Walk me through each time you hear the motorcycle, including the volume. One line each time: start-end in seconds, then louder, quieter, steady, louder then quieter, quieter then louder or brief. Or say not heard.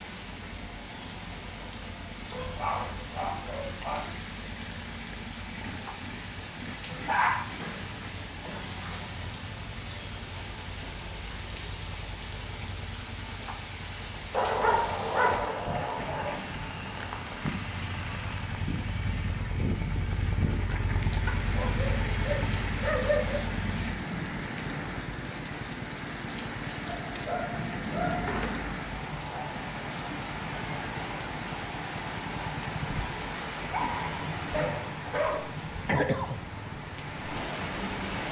0.2-38.2 louder then quieter.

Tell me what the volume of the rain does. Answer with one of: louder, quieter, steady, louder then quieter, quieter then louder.
louder.